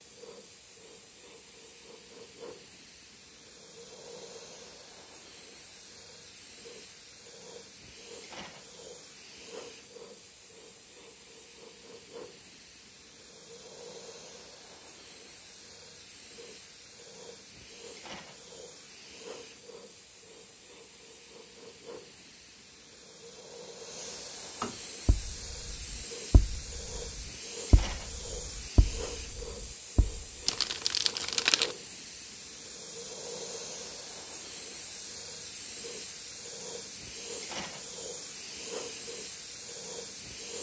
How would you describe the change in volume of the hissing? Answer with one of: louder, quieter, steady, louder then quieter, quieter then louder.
louder.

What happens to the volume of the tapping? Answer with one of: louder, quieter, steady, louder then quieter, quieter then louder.
louder then quieter.